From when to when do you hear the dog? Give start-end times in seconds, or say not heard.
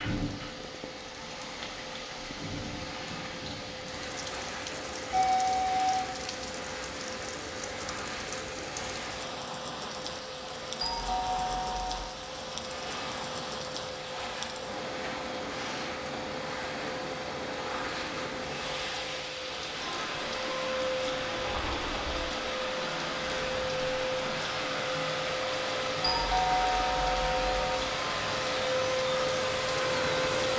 not heard.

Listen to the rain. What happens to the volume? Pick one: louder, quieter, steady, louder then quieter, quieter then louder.
steady.